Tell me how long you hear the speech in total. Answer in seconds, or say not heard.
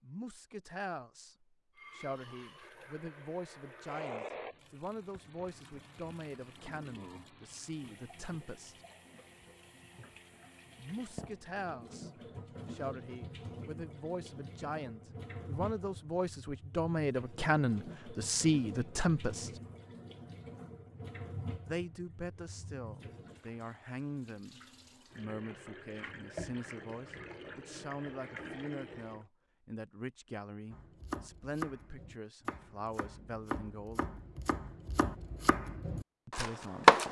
31 s.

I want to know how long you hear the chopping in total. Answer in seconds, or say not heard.
6 s.